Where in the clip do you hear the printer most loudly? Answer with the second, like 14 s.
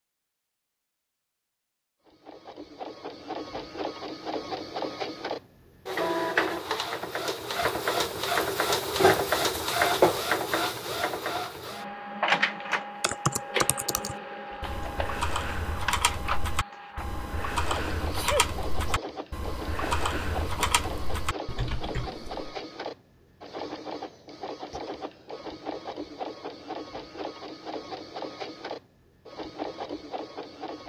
10 s.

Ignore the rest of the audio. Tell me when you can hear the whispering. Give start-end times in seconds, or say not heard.
not heard.